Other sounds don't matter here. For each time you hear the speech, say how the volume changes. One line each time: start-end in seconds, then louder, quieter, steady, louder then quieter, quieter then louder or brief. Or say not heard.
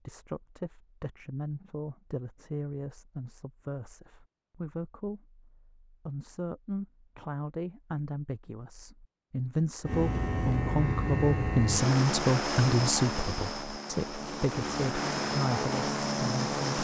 0.1-16.7 louder then quieter.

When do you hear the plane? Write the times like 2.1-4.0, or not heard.
9.8-16.7.